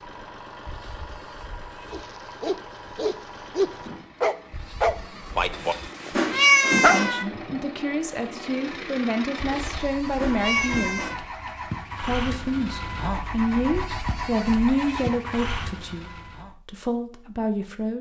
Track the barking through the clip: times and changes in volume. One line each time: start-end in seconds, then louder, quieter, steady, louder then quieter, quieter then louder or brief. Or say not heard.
1.9-7.0 louder then quieter.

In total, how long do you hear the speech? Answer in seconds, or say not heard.
10 s.